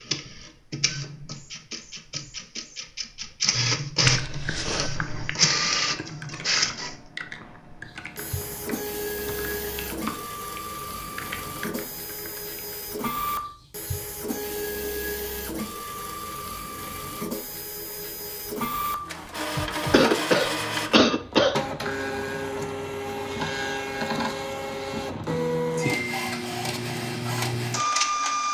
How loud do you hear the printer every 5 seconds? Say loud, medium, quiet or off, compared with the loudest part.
loud, loud, medium, medium, loud, loud.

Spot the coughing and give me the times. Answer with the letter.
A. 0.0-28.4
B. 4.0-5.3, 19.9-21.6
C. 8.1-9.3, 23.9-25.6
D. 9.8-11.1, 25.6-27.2
B.